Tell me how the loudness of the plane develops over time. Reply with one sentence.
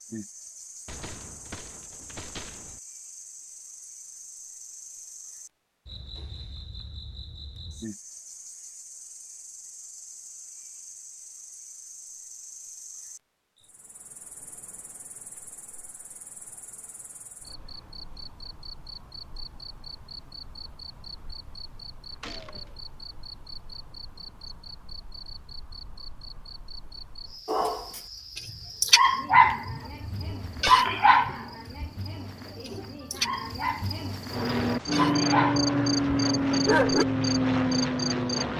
The loudness of the plane stays about the same.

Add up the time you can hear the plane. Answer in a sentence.
The plane can be heard for 4 seconds in total.